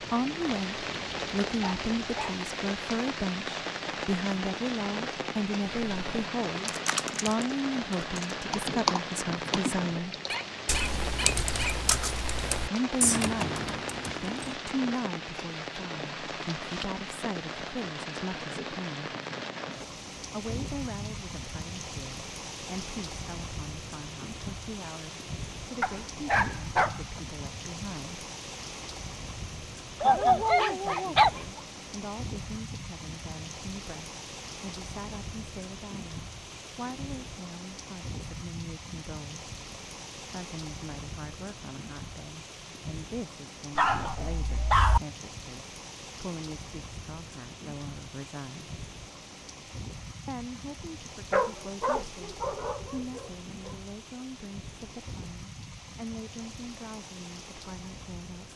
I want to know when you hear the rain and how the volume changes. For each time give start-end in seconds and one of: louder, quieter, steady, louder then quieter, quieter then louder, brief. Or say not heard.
0.0-58.5 quieter.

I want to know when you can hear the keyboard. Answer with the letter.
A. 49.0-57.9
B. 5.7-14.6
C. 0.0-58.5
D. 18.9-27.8
B.